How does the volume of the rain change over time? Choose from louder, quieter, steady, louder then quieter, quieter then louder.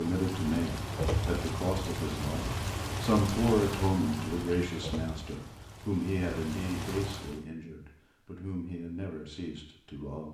quieter.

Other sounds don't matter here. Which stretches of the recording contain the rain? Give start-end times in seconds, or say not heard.
0.0-7.5.